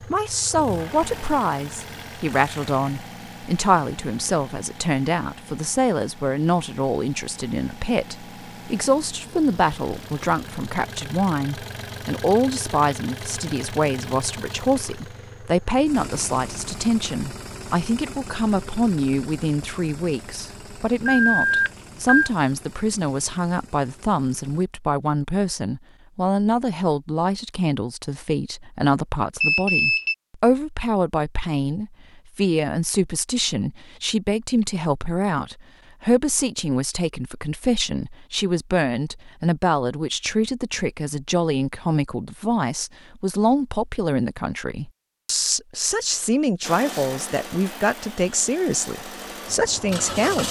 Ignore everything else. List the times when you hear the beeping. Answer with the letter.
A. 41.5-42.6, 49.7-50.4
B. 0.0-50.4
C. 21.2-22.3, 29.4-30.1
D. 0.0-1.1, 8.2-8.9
C.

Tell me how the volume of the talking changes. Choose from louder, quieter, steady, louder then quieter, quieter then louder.
steady.